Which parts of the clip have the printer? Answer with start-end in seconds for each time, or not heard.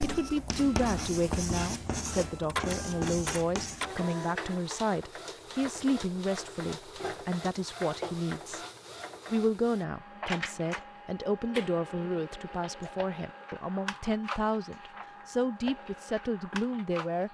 0.0-17.2.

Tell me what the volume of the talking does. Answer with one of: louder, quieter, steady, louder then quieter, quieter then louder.
steady.